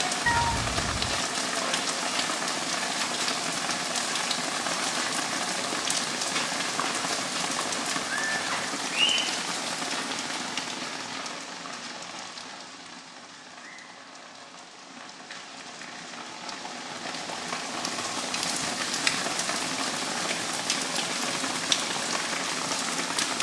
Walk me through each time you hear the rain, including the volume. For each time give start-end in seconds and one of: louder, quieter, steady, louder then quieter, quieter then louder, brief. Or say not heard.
0.0-23.3 quieter then louder.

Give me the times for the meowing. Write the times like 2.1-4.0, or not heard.
0.2-1.2.